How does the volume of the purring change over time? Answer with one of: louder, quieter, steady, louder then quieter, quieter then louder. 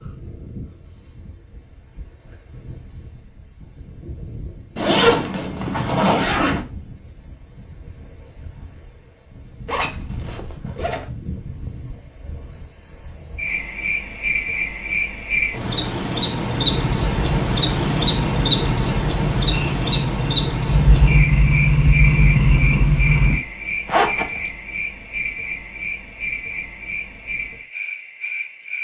louder.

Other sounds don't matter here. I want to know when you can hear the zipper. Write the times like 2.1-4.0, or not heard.
4.8-6.7, 9.7-11.1, 23.9-24.4.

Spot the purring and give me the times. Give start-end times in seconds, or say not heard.
16.5-23.4.